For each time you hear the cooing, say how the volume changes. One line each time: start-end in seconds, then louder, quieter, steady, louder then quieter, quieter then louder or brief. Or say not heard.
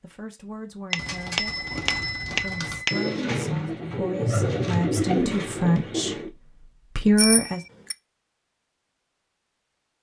0.9-6.3 louder.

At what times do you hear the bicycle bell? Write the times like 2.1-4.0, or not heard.
0.9-3.1, 7.2-8.0.